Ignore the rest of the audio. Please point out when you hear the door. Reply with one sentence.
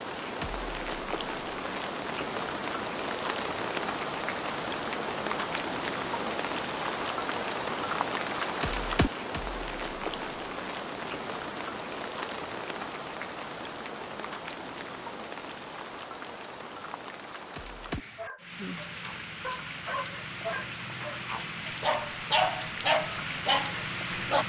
You can't hear the door here.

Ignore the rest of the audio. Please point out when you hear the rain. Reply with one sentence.
You can hear the rain from 0.0 to 24.4 s.